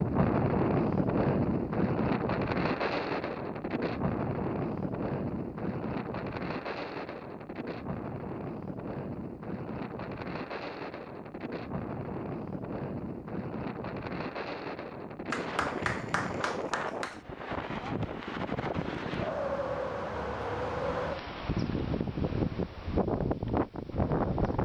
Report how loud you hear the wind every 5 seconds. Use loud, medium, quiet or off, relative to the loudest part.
loud, medium, medium, medium, loud.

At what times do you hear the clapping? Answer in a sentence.
The clapping can be heard from 15.3 to 17.2 s.